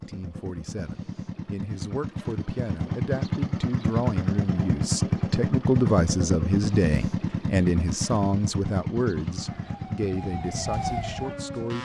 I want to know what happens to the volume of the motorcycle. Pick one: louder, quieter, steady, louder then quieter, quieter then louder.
louder then quieter.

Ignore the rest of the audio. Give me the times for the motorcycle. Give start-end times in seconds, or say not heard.
0.0-11.7.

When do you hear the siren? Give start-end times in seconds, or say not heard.
9.1-11.7.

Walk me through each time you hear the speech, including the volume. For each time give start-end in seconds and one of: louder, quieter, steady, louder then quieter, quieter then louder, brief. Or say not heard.
0.0-11.7 louder then quieter.